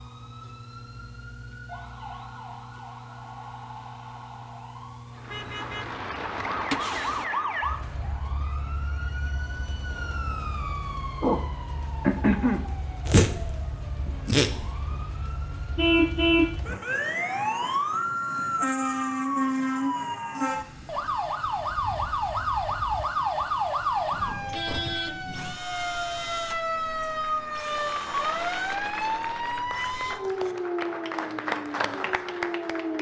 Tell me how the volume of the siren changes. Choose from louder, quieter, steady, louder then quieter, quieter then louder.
louder.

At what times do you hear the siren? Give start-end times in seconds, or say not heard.
0.0-32.9.